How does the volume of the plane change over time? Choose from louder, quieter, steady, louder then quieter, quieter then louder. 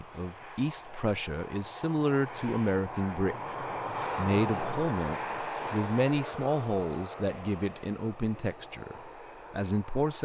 louder then quieter.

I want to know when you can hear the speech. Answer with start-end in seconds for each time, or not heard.
0.0-10.2.